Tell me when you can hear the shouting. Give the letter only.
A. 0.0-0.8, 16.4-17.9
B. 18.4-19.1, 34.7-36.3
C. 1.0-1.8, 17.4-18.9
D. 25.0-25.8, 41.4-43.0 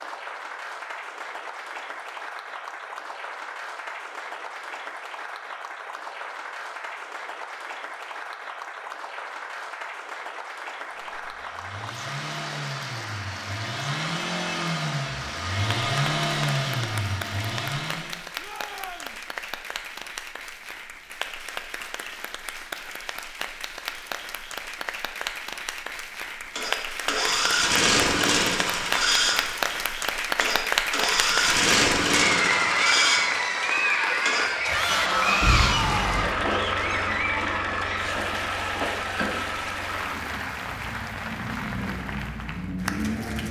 B.